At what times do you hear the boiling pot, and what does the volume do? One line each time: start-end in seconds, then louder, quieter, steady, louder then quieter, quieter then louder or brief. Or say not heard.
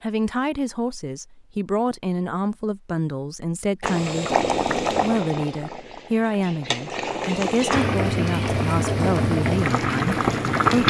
3.8-10.8 quieter then louder.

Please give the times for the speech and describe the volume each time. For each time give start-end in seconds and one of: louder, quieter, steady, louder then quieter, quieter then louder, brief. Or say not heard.
0.0-10.8 steady.